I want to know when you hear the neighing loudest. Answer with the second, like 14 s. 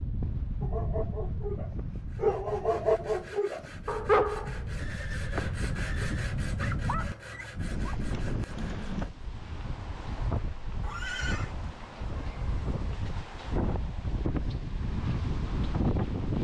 11 s.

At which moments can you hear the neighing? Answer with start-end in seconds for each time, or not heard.
4.8-6.3, 10.8-11.5.